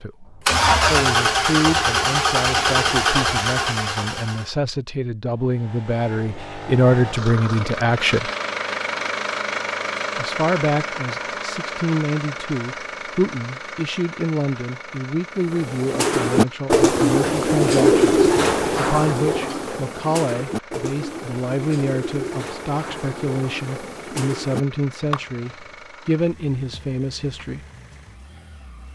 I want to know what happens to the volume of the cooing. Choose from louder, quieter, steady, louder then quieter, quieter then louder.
quieter.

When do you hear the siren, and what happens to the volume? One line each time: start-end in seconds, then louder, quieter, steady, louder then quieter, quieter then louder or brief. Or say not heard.
not heard.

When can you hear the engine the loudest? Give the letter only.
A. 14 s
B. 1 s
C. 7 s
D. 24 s
B.